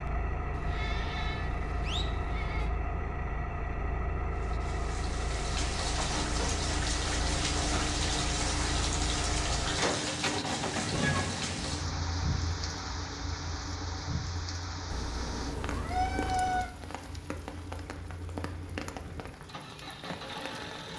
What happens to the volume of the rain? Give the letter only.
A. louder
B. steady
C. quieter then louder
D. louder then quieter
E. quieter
E.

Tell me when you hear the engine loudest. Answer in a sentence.
The volume of the engine peaks at 11 seconds.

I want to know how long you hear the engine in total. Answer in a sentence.
You can hear the engine for 21 seconds altogether.